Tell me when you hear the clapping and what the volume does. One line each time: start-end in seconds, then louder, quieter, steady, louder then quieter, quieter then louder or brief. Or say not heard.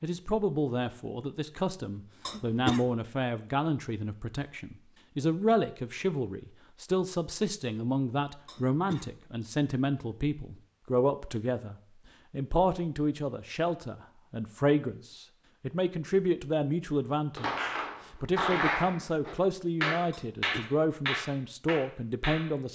17.4-22.5 quieter.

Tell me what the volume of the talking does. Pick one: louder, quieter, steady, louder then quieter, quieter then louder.
steady.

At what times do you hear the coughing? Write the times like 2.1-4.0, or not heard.
2.2-2.9, 8.4-9.2, 20.1-20.7.